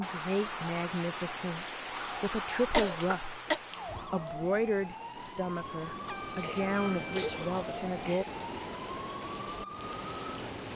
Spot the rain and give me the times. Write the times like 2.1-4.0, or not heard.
0.0-10.7.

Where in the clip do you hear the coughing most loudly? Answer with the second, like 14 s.
3 s.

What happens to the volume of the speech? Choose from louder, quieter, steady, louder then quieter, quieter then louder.
steady.